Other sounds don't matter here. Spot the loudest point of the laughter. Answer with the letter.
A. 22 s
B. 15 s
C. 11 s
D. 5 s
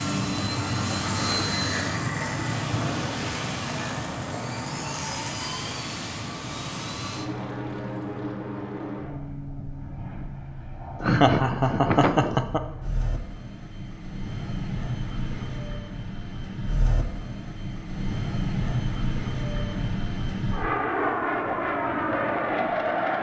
C.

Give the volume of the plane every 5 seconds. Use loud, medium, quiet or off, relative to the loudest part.
loud, medium, medium, medium, loud.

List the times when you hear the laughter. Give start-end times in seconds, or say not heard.
11.0-12.6.